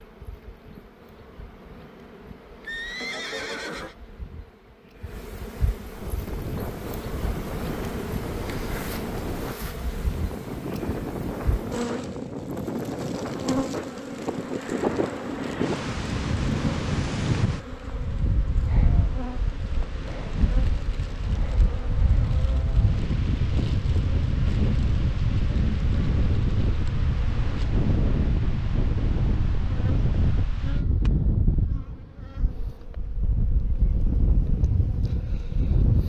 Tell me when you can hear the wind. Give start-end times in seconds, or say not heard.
5.8-36.0.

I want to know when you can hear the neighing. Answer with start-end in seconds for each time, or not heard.
2.6-4.0.